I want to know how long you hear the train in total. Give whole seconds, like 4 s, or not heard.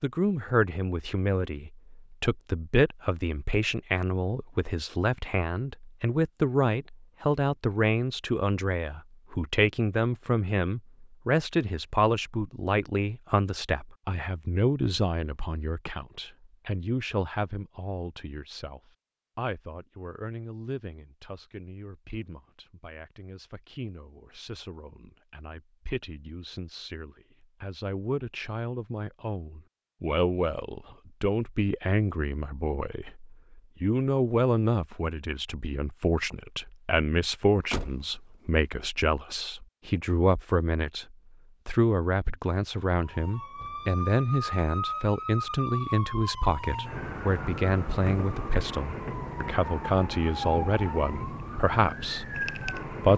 not heard.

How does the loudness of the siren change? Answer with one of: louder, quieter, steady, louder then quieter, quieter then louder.
steady.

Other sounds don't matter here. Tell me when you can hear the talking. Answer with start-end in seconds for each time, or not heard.
0.0-53.1.